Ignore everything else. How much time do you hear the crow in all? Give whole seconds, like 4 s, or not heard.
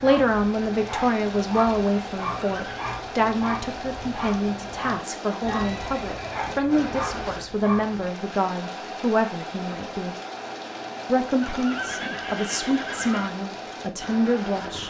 not heard.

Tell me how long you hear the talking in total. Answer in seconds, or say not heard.
14 s.